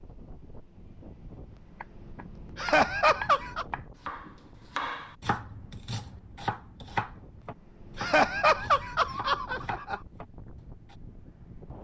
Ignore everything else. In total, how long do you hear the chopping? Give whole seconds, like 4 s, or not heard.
9 s.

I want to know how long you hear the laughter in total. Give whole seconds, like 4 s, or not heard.
3 s.